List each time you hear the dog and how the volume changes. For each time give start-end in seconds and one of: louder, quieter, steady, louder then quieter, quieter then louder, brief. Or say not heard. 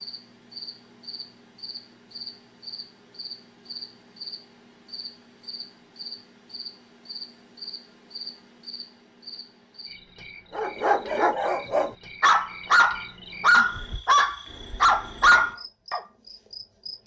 10.6-16.0 louder.